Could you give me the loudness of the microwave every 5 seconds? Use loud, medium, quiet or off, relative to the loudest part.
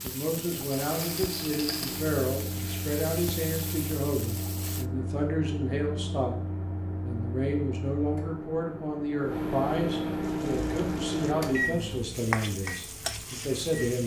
medium, medium, loud.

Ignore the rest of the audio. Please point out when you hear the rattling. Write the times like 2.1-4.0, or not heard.
0.8-2.0.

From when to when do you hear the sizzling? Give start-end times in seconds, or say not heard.
0.0-4.8, 10.2-14.0.